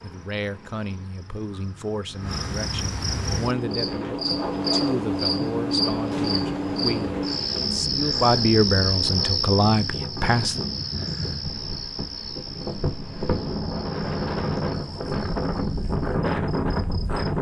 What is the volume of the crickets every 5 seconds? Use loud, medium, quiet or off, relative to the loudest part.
medium, loud, medium, quiet.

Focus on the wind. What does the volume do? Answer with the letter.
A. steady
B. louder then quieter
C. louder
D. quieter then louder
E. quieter
C.